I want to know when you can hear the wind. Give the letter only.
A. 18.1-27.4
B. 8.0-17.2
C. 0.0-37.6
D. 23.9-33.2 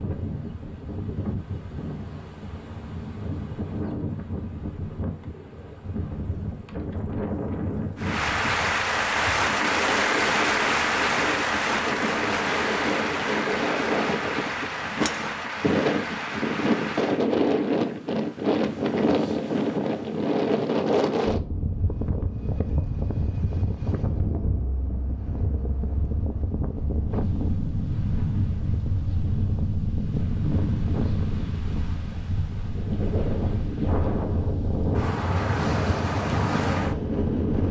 C.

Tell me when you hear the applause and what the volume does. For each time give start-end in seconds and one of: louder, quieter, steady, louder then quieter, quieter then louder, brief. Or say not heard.
8.0-17.2 quieter.